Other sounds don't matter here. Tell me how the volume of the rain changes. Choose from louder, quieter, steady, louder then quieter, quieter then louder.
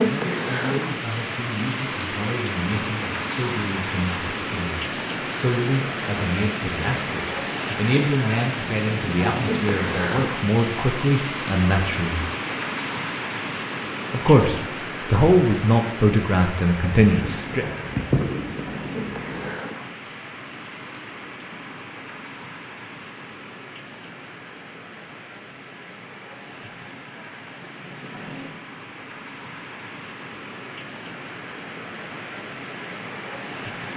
quieter.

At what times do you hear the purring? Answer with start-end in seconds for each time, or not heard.
17.1-19.6.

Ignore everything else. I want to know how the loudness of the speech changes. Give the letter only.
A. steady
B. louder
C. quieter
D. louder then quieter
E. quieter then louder
B.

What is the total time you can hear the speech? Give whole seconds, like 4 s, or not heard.
16 s.